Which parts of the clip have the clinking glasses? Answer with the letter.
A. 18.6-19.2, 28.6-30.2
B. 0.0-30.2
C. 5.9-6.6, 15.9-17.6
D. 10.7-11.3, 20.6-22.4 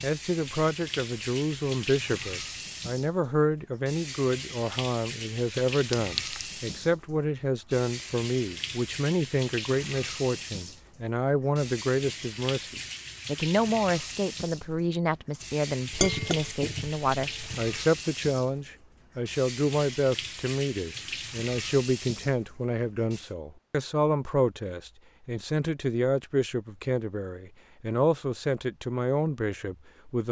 C.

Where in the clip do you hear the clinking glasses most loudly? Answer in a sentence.
The volume of the clinking glasses peaks at 16 seconds.